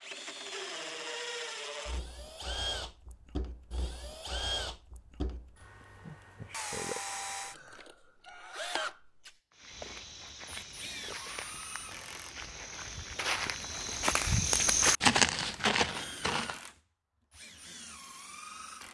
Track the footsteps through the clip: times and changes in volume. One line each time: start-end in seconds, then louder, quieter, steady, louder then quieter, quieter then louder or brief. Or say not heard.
9.5-16.6 louder.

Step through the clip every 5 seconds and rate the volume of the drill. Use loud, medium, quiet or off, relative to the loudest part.
loud, loud, medium, medium.